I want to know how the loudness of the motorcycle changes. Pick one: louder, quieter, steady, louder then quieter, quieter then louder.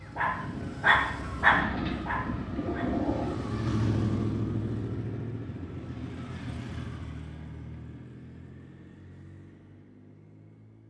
louder then quieter.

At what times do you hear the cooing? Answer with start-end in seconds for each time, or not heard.
1.5-3.4.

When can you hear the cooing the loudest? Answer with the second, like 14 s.
3 s.